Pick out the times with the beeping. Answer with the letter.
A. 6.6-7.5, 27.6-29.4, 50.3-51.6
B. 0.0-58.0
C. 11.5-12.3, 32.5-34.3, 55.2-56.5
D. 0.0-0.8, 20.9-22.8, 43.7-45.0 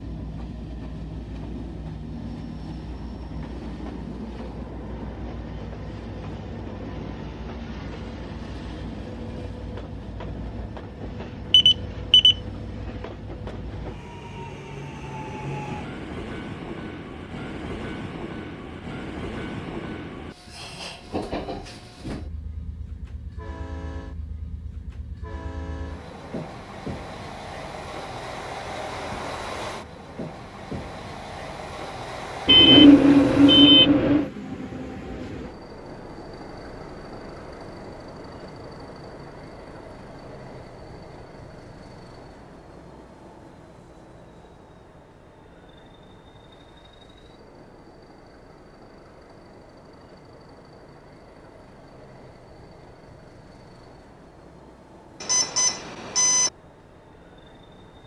C.